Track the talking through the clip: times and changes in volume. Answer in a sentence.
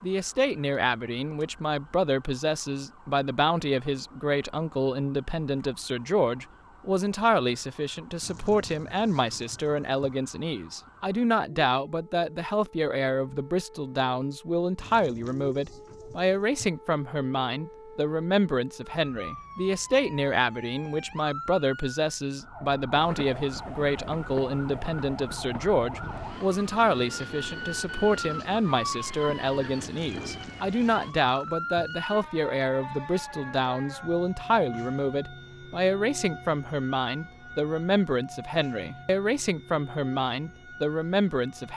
You can hear the talking from 0.0 to 41.7 s, at a steady volume.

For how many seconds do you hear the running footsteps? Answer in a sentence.
The running footsteps can't be heard in this clip.